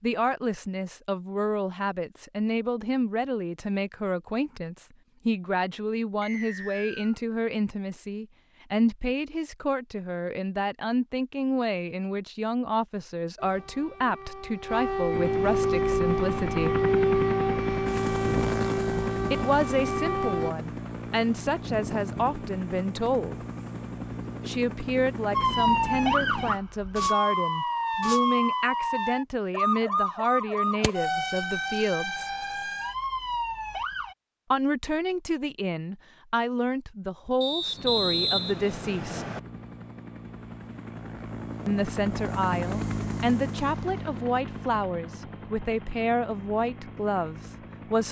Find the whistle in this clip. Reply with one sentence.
The whistle can be heard from 6.2 to 7.2 s and from 37.4 to 39.4 s.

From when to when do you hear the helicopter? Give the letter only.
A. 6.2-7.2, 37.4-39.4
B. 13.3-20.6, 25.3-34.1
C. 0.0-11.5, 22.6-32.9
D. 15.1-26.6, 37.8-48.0
D.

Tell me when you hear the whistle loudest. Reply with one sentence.
The volume of the whistle peaks at 38 seconds.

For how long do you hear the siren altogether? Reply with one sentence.
The siren can be heard for 16 seconds in total.